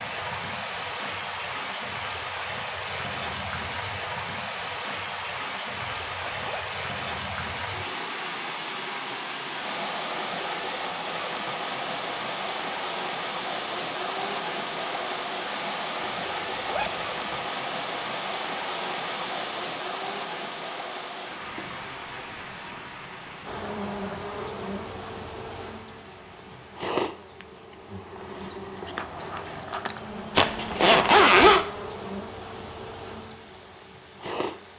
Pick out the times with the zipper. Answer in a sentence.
The zipper can be heard from 5.8 to 6.7 s, from 16.0 to 17.5 s and from 30.4 to 31.6 s.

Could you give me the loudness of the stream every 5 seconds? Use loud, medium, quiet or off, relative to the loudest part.
loud, loud, loud, loud, medium, quiet, quiet.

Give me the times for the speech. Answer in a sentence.
You can't hear the speech here.